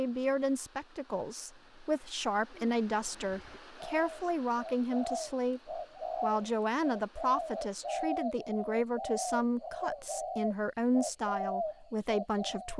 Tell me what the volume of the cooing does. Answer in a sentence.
The loudness of the cooing goes up.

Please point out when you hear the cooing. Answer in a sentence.
The cooing can be heard from 2.5 to 12.7 s.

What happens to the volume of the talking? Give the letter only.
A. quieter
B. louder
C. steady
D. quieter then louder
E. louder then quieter
C.